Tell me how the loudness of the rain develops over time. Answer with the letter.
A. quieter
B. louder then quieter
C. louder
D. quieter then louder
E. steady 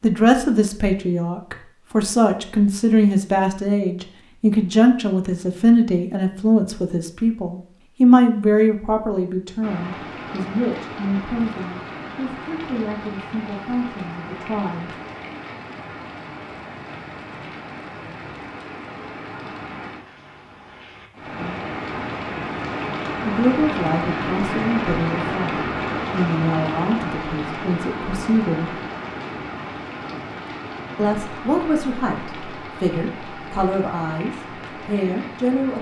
B.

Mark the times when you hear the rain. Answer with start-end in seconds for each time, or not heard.
9.6-35.7.